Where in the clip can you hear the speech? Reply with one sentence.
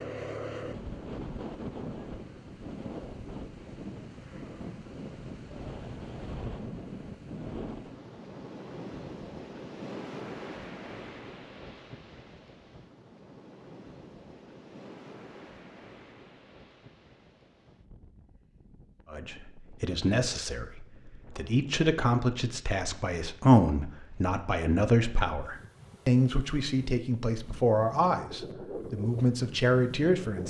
You can hear the speech from 19.1 to 30.4 s.